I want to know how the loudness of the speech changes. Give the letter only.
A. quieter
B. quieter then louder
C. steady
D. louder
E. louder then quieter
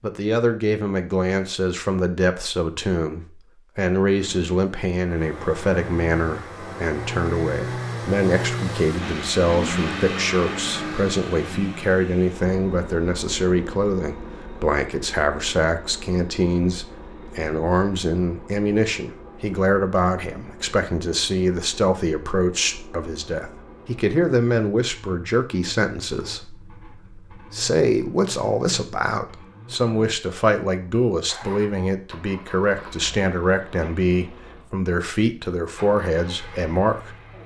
C.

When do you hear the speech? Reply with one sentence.
The speech can be heard from 0.0 to 37.1 s.